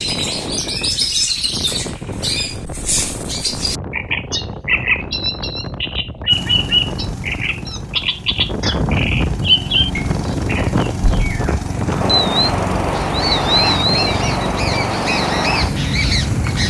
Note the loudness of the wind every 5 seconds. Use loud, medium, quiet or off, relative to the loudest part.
medium, medium, loud, loud.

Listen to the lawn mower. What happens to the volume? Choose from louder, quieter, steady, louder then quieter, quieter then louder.
louder.